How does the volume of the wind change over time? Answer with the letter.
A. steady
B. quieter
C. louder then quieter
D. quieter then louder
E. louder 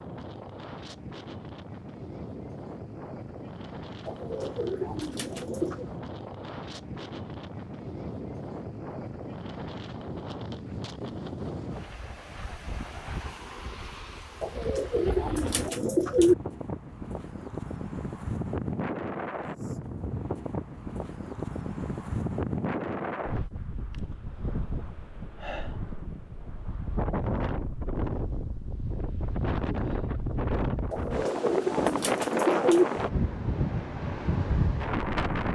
E.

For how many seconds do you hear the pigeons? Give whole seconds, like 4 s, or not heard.
6 s.